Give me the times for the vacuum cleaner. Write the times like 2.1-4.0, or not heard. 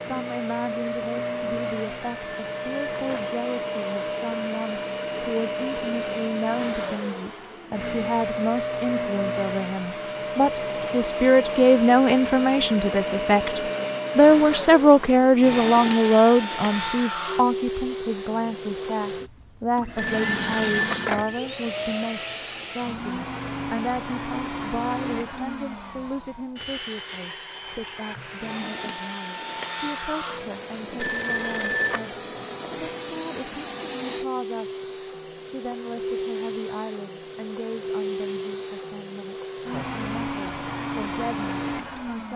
0.0-42.3.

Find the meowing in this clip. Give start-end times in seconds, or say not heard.
not heard.